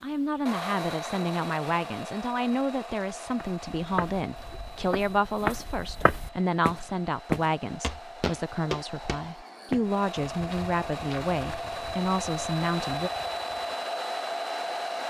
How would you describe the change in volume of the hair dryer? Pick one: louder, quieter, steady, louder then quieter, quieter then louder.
quieter then louder.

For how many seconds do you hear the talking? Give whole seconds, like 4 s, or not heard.
13 s.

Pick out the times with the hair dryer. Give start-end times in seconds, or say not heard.
0.0-15.0.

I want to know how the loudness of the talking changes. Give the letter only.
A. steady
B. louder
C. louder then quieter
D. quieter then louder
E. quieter
A.